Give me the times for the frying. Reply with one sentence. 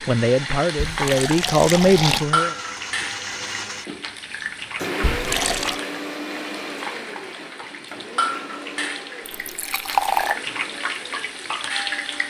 You can hear the frying from 0.0 to 12.2 s.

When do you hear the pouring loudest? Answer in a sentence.
The loudest moment of the pouring is at 10 seconds.